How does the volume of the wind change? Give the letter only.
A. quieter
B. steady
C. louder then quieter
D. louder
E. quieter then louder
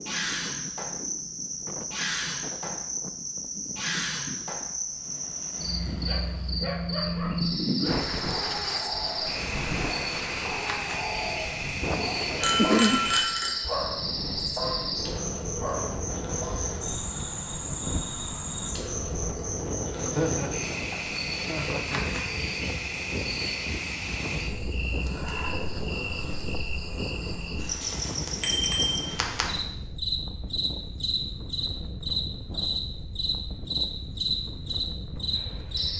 C.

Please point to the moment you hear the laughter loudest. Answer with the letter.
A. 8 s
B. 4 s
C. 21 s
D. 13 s
D.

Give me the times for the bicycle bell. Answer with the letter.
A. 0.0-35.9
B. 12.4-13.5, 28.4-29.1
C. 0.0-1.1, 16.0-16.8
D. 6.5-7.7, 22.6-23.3
B.